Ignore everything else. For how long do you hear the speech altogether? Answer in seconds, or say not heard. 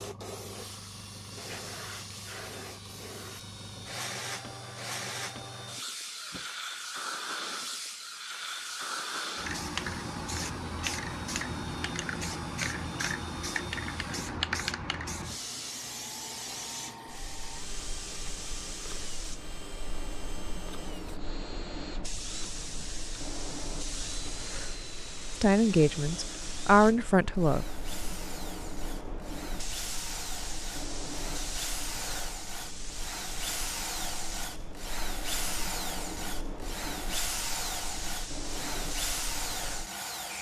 2 s.